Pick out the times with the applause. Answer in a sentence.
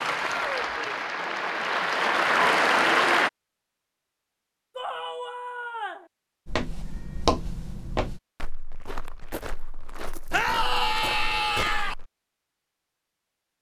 You can hear the applause from 0.0 to 3.3 s.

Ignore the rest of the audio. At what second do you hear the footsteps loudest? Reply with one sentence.
The loudest moment of the footsteps is at 7 seconds.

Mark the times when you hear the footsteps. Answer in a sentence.
You can hear the footsteps from 6.5 to 12.1 s.